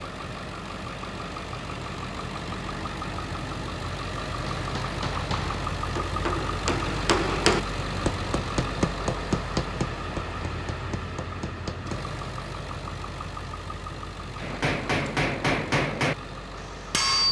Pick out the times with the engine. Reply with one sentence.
The engine can be heard from 0.0 to 17.2 s.